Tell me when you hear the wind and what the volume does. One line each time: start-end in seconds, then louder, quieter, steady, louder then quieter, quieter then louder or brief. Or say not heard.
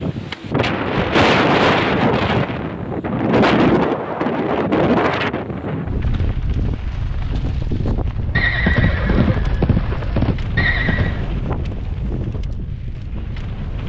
0.0-13.8 quieter.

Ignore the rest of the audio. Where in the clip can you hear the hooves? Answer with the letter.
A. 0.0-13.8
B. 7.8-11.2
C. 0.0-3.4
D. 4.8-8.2
B.